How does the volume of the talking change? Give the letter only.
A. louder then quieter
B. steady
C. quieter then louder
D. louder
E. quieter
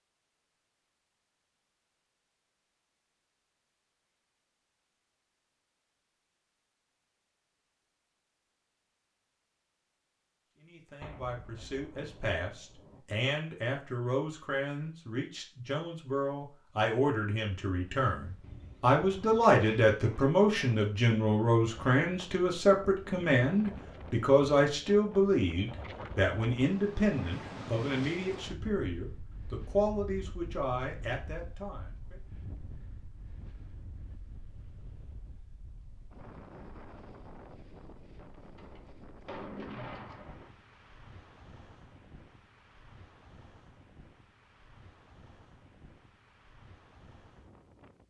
A.